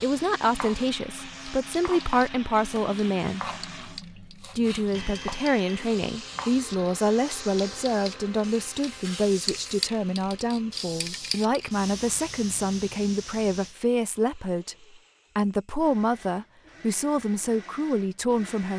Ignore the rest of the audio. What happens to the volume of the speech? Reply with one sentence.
The loudness of the speech stays about the same.